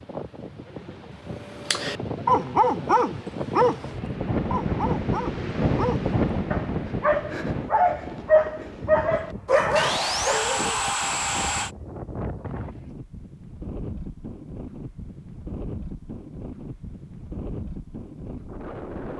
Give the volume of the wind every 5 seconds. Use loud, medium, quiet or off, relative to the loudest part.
loud, loud, medium, medium.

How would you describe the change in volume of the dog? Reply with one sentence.
The volume of the dog goes down, then up.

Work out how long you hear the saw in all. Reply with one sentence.
The saw can be heard for 2 seconds in total.